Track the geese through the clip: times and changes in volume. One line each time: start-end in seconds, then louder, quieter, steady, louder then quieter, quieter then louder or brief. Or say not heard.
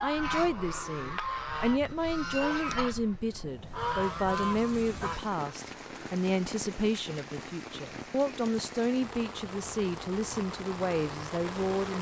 0.0-5.3 steady.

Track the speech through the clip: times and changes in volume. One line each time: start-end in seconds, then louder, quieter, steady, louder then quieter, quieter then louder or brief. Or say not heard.
0.0-11.9 steady.